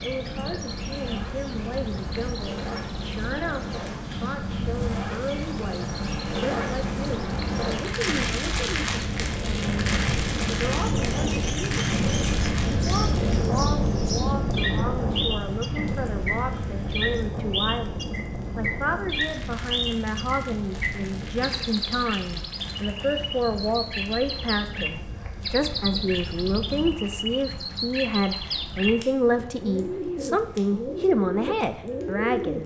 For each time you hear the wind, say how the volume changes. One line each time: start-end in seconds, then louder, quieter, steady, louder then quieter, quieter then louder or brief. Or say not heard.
0.0-26.9 louder then quieter.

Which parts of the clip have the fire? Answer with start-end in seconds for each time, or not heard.
0.0-32.6.